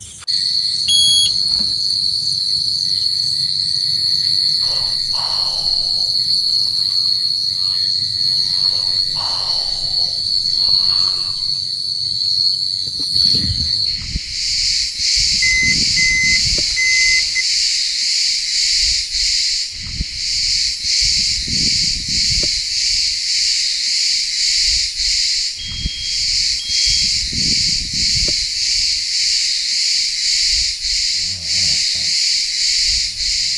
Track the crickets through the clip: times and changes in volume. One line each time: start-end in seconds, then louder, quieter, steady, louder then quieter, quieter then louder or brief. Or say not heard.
0.0-33.5 steady.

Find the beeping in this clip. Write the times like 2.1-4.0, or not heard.
0.8-1.7, 15.4-17.4, 25.6-26.9.